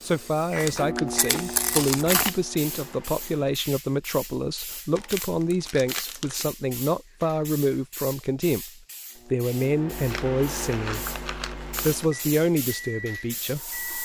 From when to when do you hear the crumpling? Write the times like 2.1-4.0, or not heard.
0.6-2.4, 5.0-6.5, 9.9-12.1.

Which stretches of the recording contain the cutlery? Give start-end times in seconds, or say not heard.
not heard.